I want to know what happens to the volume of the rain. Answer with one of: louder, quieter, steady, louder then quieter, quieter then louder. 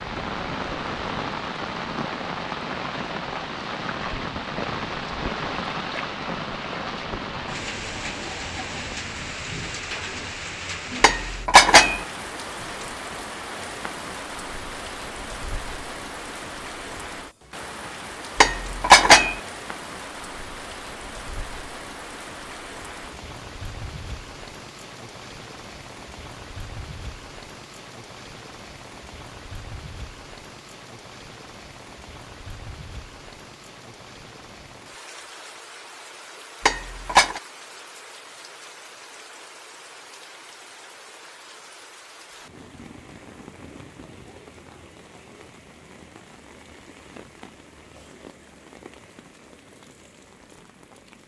quieter.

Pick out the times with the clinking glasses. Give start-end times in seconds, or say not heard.
11.0-12.0, 18.4-19.4, 36.6-37.4.